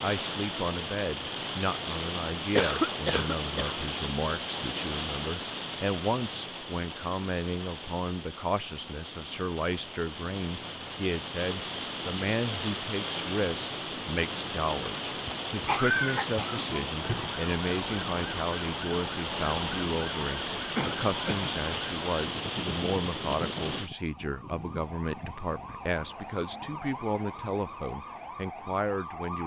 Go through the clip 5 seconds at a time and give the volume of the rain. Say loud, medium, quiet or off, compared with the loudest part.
loud, medium, loud, loud, loud, off.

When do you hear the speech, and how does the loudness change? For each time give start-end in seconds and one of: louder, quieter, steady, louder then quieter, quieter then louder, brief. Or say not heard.
0.0-29.4 steady.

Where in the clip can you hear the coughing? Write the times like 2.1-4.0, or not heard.
2.5-3.8, 15.2-17.2, 20.8-21.9.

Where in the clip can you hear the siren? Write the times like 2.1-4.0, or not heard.
17.0-29.4.